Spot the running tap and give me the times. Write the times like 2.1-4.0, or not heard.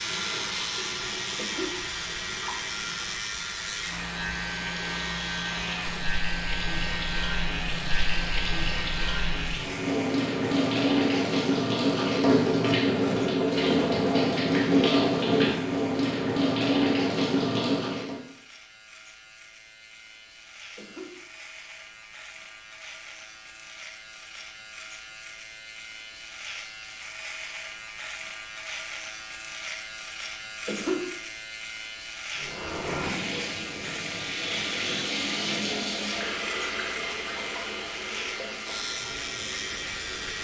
0.0-18.2, 32.3-40.3.